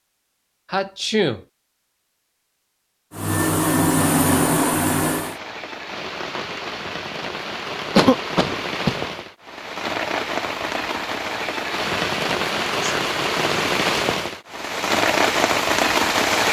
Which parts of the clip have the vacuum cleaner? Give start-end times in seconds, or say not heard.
3.1-5.4.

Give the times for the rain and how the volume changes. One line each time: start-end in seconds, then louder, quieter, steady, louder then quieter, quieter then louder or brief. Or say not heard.
4.0-16.4 louder.